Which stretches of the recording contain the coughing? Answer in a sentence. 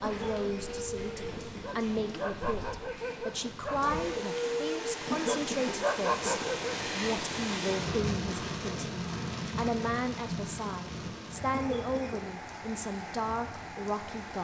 The coughing can be heard from 0.0 to 2.6 s, from 5.0 to 6.4 s and from 11.5 to 12.2 s.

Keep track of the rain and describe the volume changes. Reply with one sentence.
The loudness of the rain goes up, then down.